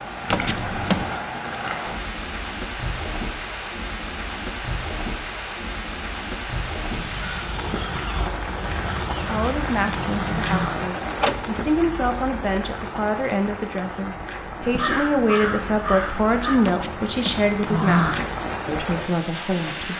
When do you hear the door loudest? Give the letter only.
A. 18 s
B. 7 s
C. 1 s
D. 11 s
A.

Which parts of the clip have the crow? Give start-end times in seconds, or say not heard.
6.9-10.7, 14.6-16.6.